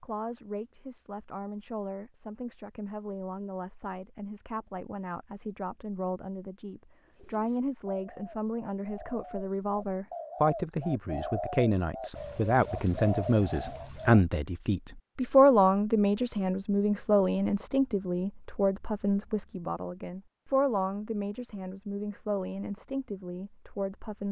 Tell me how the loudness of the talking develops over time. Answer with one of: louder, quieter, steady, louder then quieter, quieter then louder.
louder then quieter.